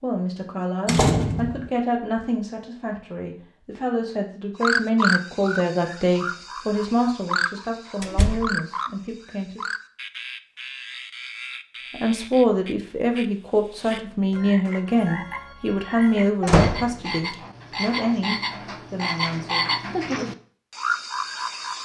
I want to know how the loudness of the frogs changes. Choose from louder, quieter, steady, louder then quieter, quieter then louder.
quieter then louder.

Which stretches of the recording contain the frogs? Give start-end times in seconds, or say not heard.
4.6-21.8.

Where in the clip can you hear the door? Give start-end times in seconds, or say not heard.
0.8-1.7, 8.0-8.6, 16.4-16.9.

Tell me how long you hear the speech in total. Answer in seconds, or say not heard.
18 s.